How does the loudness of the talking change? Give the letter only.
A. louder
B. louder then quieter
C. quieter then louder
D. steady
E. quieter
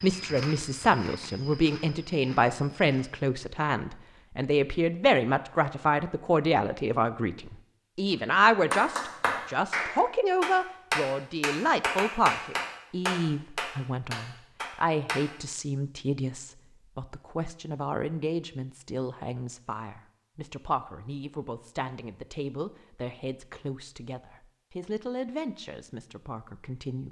E.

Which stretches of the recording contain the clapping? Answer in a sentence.
The clapping can be heard from 8.7 to 15.2 s.